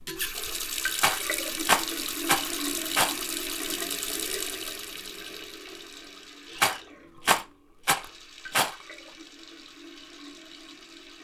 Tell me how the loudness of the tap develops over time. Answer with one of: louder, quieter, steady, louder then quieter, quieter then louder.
quieter.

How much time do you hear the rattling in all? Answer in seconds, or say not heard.
4 s.